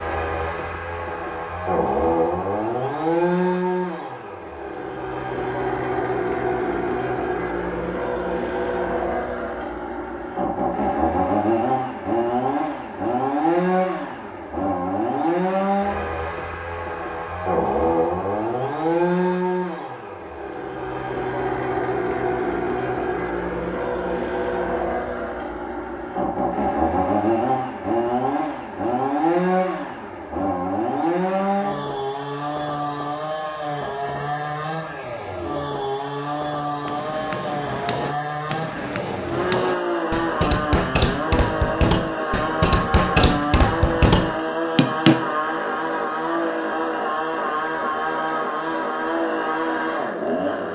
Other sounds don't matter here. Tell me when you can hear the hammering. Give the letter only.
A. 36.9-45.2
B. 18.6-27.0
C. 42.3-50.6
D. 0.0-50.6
A.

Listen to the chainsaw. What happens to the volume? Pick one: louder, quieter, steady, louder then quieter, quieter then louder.
steady.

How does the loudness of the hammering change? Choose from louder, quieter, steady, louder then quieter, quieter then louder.
louder.